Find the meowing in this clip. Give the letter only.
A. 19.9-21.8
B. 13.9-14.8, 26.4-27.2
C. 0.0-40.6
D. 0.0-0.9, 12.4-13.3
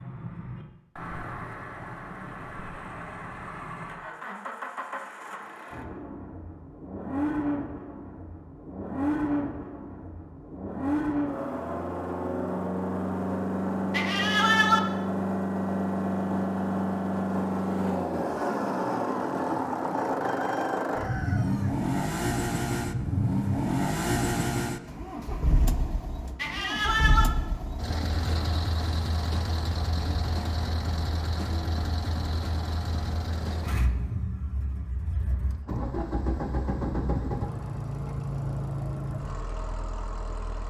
B.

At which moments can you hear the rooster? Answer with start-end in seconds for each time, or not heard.
19.9-21.8.